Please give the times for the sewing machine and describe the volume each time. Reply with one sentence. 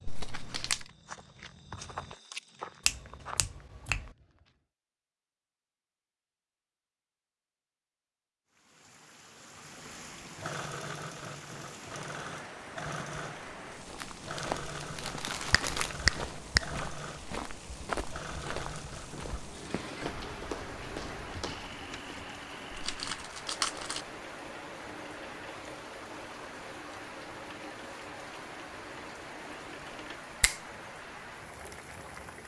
The sewing machine can be heard from 9.7 to 30.2 s, getting quieter.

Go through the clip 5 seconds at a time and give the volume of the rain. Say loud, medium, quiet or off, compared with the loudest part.
off, medium, loud, loud, loud, loud, loud.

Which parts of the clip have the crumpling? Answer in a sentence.
The crumpling can be heard from 0.1 to 0.9 s, from 13.9 to 16.0 s and from 22.7 to 24.1 s.